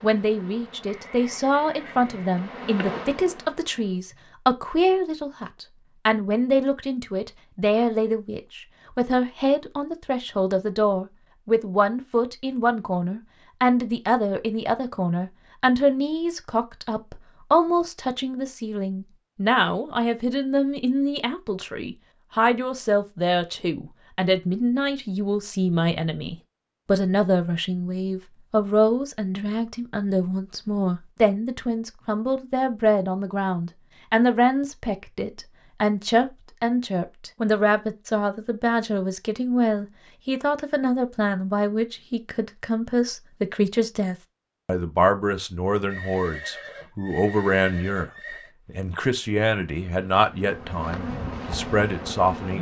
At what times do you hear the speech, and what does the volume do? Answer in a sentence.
The speech can be heard from 0.0 to 52.5 s, at a steady volume.